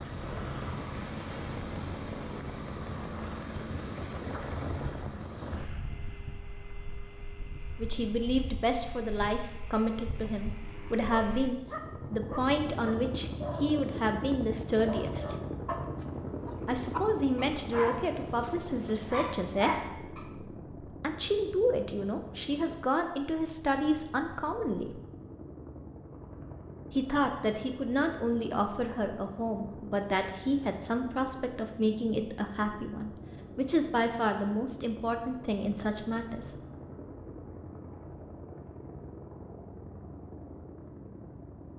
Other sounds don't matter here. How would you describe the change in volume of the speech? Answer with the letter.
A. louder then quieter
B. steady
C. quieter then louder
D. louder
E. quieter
B.